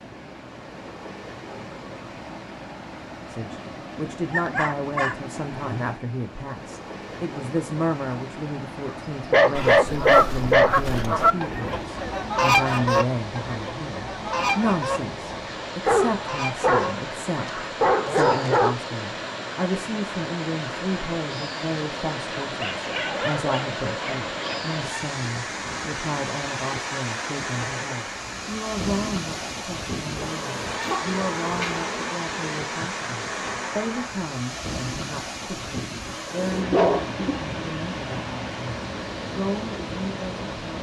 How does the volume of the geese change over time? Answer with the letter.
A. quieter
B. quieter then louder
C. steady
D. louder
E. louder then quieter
A.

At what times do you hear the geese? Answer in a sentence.
The geese can be heard from 9.6 to 17.7 s.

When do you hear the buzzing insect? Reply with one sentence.
You can hear the buzzing insect from 30.2 to 34.1 s.